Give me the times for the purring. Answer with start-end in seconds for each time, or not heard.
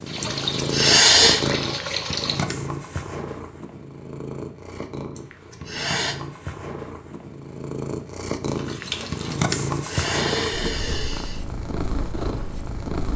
0.0-13.1.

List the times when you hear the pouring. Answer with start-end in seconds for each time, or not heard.
0.1-2.5, 8.3-9.4.